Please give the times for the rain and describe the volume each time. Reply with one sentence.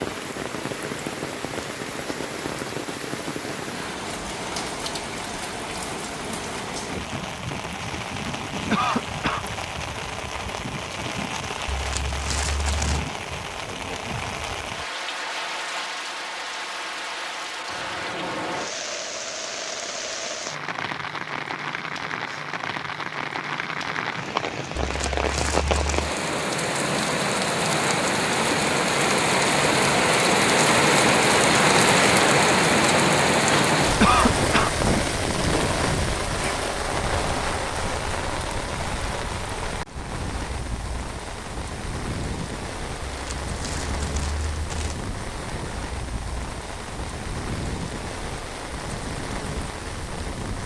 The rain can be heard from 0.0 to 50.6 s, getting louder then quieter.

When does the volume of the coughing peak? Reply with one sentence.
The loudest moment of the coughing is at 34 seconds.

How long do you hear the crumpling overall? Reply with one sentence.
The crumpling can be heard for 5 seconds in total.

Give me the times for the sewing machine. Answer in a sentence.
The sewing machine can't be heard in this clip.